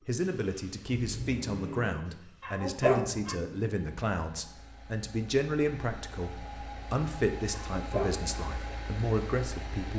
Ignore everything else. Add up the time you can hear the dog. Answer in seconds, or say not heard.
2 s.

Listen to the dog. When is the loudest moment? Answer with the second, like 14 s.
3 s.